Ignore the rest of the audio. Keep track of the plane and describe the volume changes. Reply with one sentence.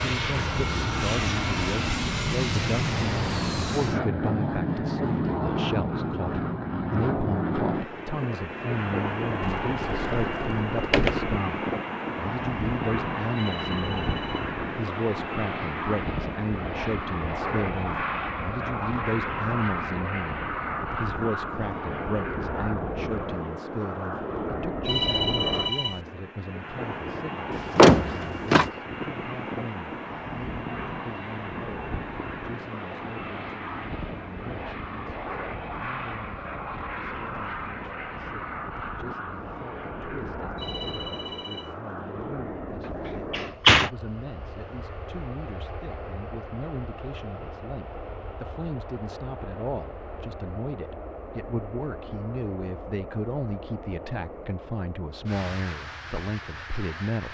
The volume of the plane goes down.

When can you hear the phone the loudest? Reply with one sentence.
The loudest moment of the phone is at 25 seconds.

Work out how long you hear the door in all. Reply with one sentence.
You can hear the door for 4 seconds altogether.